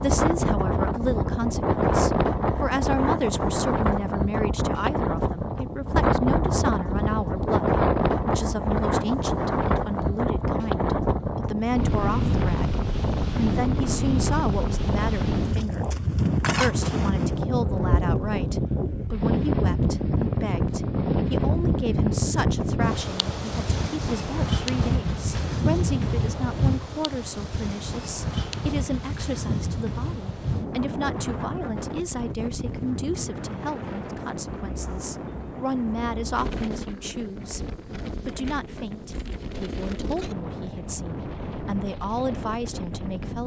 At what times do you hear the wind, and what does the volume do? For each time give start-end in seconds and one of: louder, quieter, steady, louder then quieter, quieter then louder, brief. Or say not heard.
0.0-43.4 quieter.